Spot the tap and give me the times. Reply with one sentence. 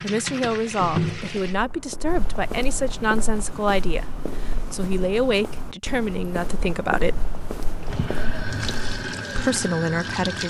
The tap can be heard from 0.0 to 1.6 s and from 7.8 to 10.4 s.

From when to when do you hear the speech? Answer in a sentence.
You can hear the speech from 0.0 to 7.2 s and from 9.3 to 10.4 s.